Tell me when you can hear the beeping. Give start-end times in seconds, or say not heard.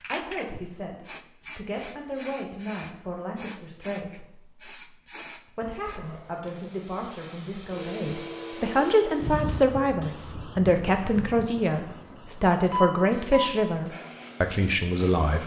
12.7-13.5.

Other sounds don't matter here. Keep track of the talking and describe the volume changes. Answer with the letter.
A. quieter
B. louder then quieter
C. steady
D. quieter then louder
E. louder
E.